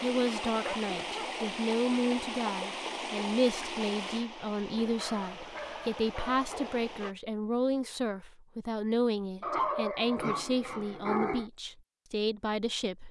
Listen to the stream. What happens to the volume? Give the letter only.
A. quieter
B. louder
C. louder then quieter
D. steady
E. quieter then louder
A.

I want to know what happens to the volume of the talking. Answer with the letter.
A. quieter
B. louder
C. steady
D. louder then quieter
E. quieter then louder
C.